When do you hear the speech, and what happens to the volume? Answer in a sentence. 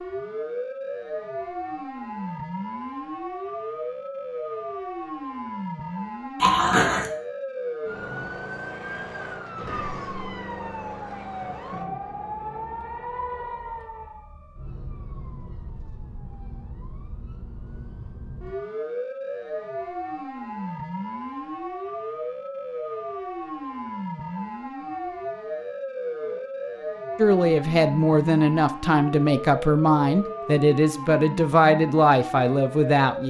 The speech can be heard from 27.1 to 33.2 s, at a steady volume.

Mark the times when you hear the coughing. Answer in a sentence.
You can hear the coughing from 6.4 to 7.1 s.